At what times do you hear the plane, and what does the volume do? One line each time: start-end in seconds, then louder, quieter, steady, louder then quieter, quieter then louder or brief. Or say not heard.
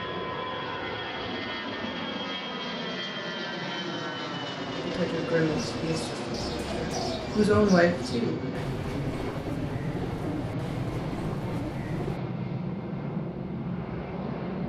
0.0-14.6 steady.